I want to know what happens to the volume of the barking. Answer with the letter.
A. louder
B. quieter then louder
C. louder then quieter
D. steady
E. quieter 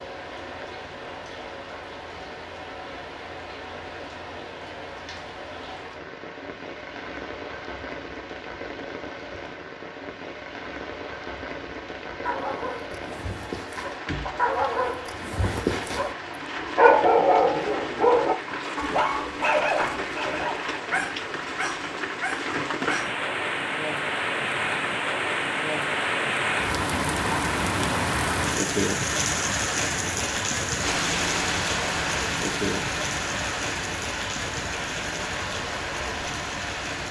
C.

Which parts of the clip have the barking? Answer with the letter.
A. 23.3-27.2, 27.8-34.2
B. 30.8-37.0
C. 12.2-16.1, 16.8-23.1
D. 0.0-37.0
C.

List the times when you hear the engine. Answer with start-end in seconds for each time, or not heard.
30.8-37.0.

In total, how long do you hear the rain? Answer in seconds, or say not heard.
37 s.